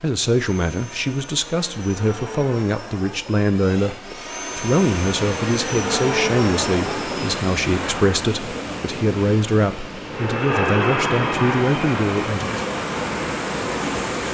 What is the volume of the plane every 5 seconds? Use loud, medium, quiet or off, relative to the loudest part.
medium, loud, loud.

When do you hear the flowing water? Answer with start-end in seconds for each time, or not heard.
4.4-14.2.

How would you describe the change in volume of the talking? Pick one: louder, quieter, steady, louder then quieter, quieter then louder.
steady.